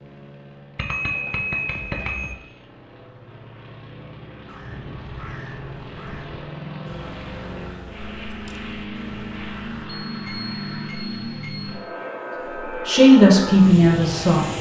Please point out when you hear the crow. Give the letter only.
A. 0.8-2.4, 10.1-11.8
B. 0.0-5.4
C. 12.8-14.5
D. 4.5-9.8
D.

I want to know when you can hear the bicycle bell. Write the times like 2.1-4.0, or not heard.
0.8-2.4, 10.1-11.8.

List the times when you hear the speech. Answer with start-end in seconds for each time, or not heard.
12.8-14.5.